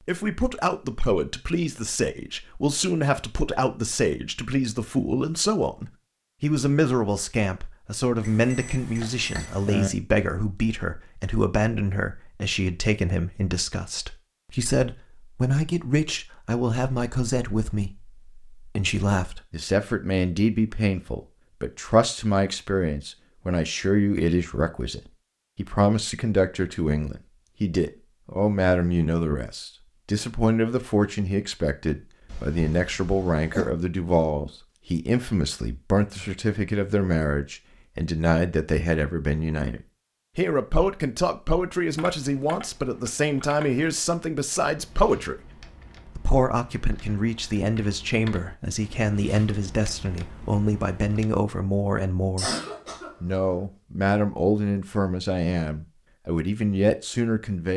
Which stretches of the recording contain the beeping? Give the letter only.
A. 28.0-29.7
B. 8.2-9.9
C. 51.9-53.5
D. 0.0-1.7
B.